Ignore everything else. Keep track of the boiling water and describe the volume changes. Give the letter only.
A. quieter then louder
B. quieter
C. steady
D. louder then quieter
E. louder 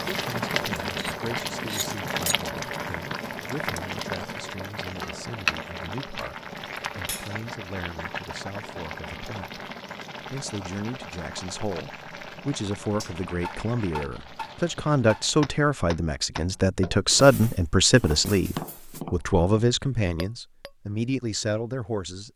B.